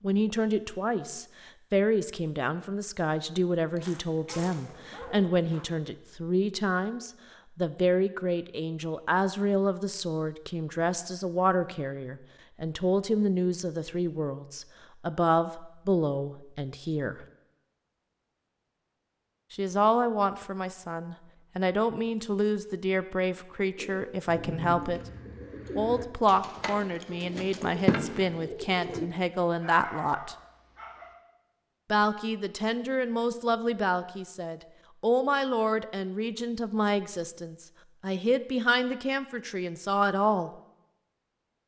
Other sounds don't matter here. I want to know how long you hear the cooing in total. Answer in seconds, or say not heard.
5 s.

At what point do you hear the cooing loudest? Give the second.
28 s.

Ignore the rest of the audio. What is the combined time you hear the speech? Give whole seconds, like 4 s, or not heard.
36 s.